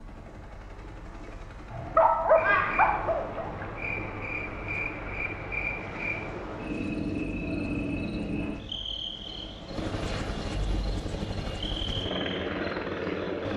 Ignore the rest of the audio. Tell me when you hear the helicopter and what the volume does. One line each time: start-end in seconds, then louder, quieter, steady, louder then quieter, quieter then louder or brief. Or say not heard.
0.0-13.5 louder.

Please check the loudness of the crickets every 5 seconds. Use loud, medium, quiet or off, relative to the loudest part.
loud, loud, medium.